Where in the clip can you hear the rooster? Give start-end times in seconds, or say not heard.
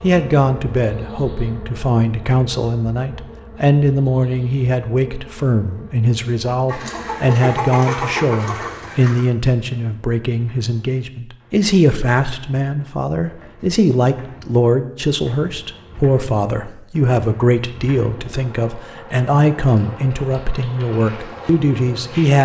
6.7-9.2.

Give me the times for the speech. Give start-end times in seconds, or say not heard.
0.0-22.3.